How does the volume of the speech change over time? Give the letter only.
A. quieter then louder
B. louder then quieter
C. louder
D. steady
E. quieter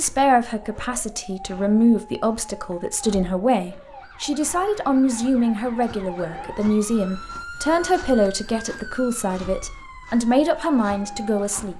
D.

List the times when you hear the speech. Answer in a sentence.
The speech can be heard from 0.0 to 11.7 s.